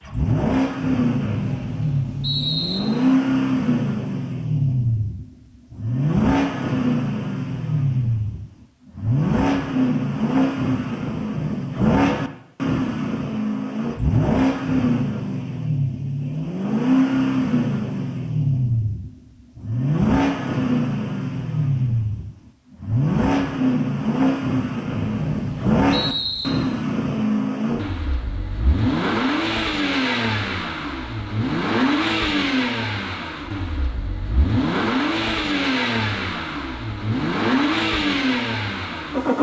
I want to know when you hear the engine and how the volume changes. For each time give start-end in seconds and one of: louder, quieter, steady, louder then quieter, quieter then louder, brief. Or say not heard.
0.0-39.3 steady.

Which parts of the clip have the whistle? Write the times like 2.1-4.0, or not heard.
1.2-2.8, 24.9-26.5.